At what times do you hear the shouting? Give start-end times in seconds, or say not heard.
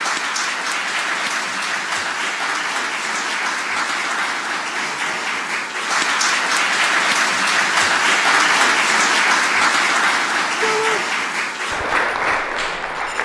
10.6-11.1.